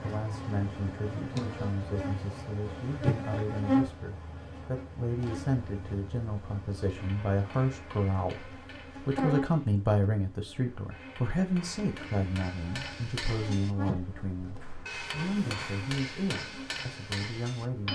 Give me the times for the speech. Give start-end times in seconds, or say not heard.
0.0-17.9.